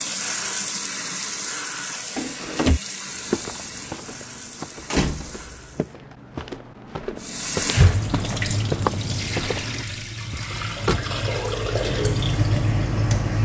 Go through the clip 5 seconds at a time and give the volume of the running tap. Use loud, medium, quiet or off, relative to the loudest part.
medium, loud, loud.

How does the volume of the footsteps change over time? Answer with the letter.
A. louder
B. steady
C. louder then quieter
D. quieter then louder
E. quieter
A.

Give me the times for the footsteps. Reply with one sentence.
You can hear the footsteps from 3.1 to 9.8 s.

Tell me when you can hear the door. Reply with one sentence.
You can hear the door from 2.1 to 2.8 s, from 4.9 to 5.5 s and from 10.3 to 11.1 s.